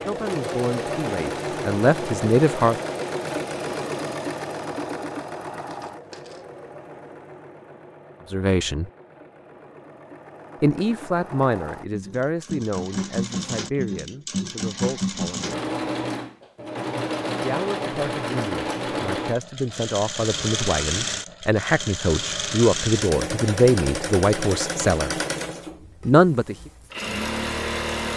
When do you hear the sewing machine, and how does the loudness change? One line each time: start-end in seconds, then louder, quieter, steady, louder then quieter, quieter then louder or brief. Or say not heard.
0.0-28.1 quieter then louder.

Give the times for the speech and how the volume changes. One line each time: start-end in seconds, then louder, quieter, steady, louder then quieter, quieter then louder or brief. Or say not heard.
0.0-2.8 brief
8.3-8.8 brief
10.6-15.6 quieter
17.4-25.1 louder
26.1-26.6 brief.